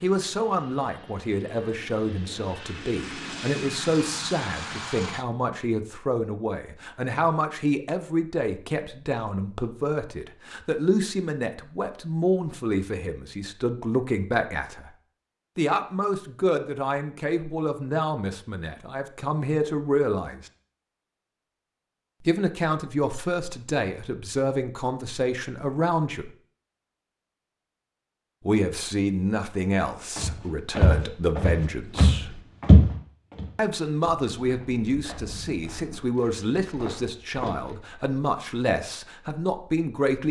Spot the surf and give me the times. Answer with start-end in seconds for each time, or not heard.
not heard.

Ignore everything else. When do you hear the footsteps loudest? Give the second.
33 s.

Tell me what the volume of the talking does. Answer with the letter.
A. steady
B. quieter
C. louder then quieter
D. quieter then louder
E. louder
A.